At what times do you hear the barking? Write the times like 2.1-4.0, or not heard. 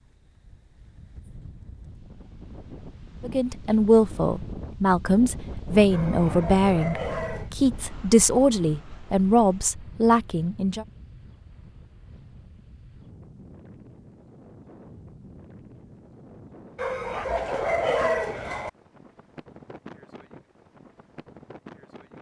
5.9-7.5, 16.8-18.7.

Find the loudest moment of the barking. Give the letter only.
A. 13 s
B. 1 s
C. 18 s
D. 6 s
C.